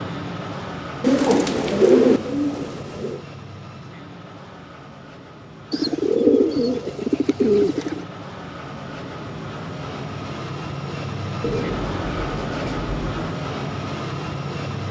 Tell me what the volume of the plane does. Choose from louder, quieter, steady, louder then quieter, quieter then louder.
quieter then louder.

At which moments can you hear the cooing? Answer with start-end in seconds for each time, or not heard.
1.0-3.2, 5.7-8.1, 11.4-13.3.